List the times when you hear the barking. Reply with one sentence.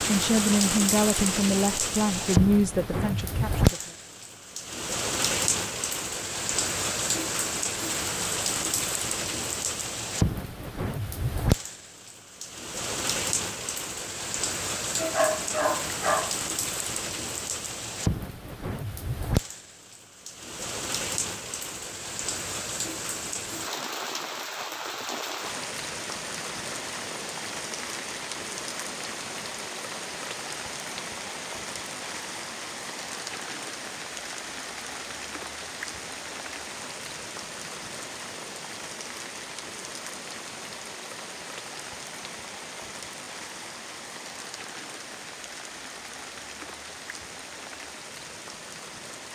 The barking can be heard from 14.9 to 16.4 s.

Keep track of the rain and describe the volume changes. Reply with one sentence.
The volume of the rain goes down.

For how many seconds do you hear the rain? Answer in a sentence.
You can hear the rain for 49 seconds altogether.